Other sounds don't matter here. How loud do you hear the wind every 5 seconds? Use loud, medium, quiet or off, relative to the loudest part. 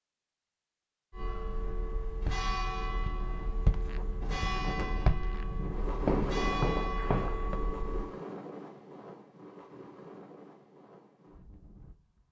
loud, loud, quiet.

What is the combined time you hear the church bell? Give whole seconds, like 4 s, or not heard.
7 s.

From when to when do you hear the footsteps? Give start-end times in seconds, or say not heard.
2.2-7.5.